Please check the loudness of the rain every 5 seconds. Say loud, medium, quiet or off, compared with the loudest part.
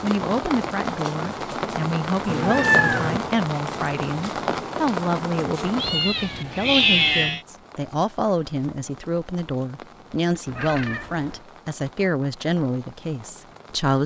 loud, medium, quiet.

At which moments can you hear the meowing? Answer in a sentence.
The meowing can be heard from 2.2 to 3.2 s, from 5.8 to 7.4 s and from 10.4 to 11.4 s.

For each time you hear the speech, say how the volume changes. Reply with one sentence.
The speech can be heard from 0.0 to 14.0 s, at a steady volume.